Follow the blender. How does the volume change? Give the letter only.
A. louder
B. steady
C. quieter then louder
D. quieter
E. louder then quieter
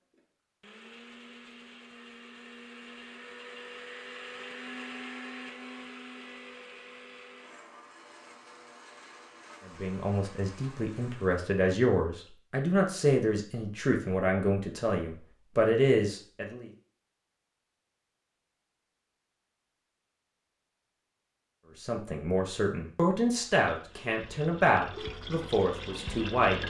E.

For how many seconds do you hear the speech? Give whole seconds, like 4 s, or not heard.
12 s.